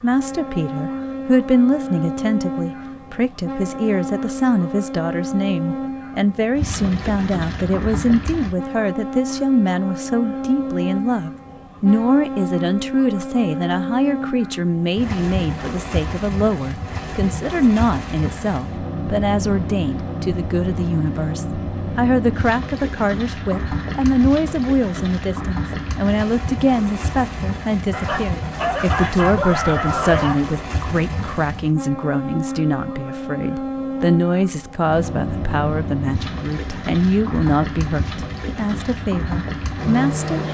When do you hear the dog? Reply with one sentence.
The dog can be heard from 27.9 to 30.4 s.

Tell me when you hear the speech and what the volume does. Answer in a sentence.
You can hear the speech from 0.0 to 40.4 s, at a steady volume.